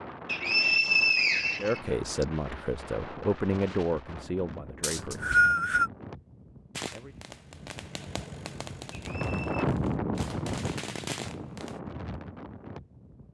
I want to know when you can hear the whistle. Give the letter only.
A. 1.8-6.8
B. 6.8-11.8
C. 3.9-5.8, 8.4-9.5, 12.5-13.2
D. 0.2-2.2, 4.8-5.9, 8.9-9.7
D.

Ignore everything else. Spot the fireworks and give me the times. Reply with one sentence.
The fireworks can be heard from 6.8 to 11.8 s.